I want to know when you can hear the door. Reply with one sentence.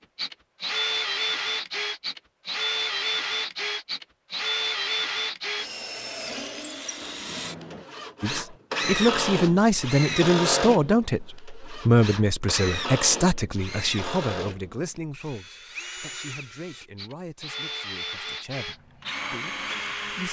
You can hear the door from 7.0 to 7.9 s.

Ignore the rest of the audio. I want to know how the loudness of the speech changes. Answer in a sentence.
The loudness of the speech goes down.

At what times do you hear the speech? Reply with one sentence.
You can hear the speech from 8.2 to 20.2 s.